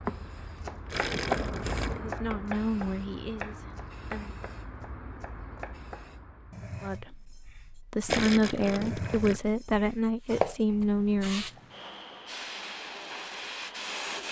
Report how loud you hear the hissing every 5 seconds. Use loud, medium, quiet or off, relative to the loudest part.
loud, medium, loud.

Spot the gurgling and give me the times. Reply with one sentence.
You can hear the gurgling from 0.8 to 2.0 s and from 8.1 to 9.4 s.